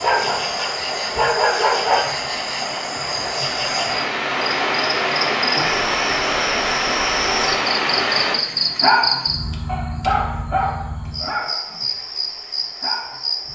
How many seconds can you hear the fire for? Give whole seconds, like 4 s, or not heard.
not heard.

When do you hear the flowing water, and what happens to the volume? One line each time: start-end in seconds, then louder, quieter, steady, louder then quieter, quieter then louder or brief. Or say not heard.
0.0-8.4 louder.